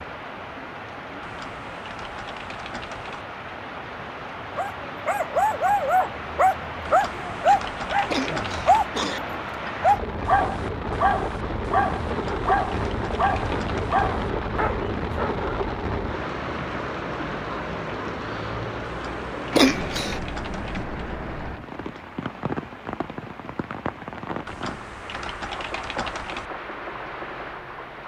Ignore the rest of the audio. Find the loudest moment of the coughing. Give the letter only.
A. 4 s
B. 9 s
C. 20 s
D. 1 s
C.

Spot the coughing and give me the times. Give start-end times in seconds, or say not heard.
8.1-9.2, 19.5-20.2.